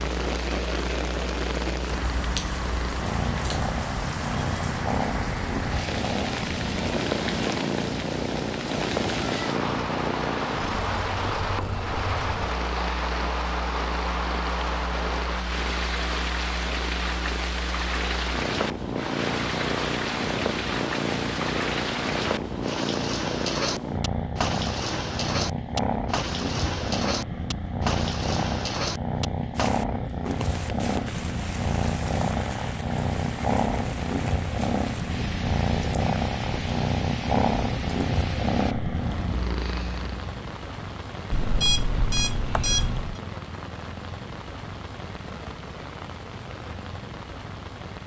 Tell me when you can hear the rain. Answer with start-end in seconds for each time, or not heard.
0.0-48.0.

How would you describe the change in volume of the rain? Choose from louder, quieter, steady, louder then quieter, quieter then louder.
quieter.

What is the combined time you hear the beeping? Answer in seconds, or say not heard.
2 s.